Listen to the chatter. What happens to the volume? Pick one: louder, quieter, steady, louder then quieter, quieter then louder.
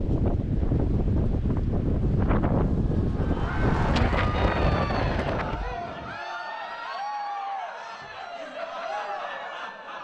steady.